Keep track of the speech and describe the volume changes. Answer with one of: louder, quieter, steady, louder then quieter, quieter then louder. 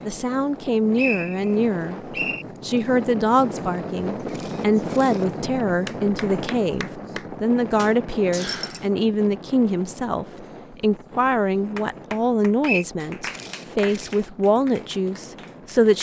steady.